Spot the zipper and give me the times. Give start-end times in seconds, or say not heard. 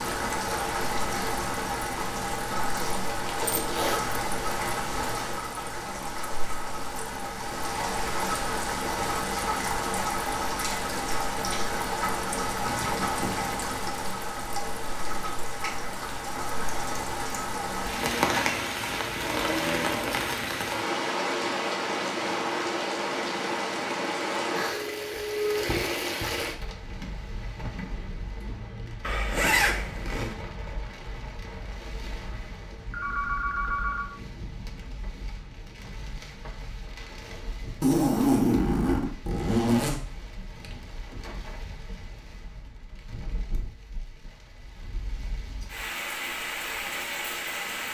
2.8-4.0, 29.0-30.4, 37.8-40.0.